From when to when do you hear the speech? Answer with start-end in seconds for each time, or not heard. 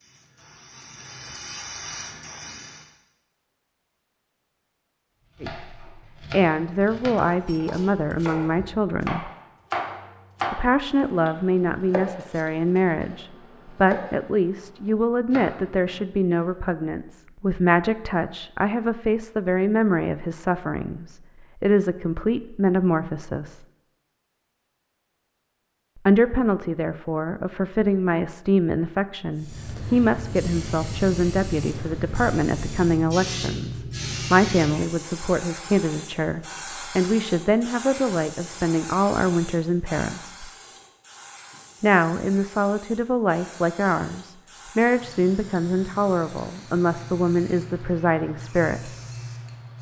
5.4-9.3, 10.5-23.6, 26.1-40.5, 41.8-49.0.